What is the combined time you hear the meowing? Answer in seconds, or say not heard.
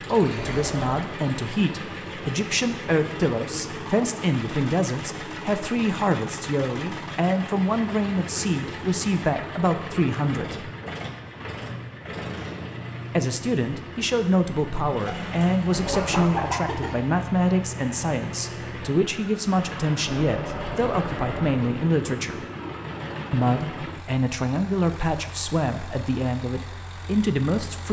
3 s.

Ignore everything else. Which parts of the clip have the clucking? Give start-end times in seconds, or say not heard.
15.1-16.9.